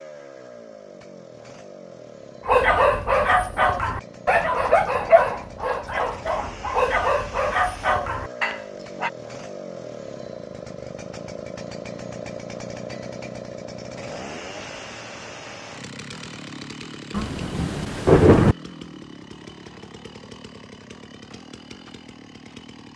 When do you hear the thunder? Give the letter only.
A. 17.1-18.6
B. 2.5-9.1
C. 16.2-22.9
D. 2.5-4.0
A.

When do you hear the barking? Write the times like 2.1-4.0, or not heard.
2.5-9.1.